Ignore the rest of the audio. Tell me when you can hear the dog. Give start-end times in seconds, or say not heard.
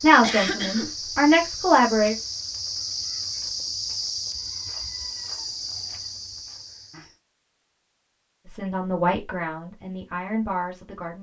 not heard.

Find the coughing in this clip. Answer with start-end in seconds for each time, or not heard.
0.2-0.9.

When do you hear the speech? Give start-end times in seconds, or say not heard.
0.0-2.1, 8.4-11.1.